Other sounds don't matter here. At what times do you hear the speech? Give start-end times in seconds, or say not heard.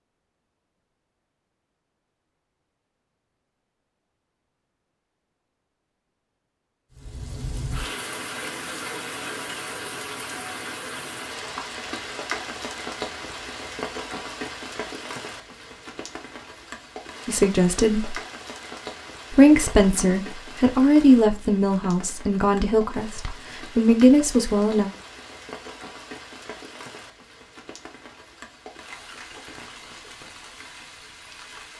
17.2-18.2, 19.3-24.9.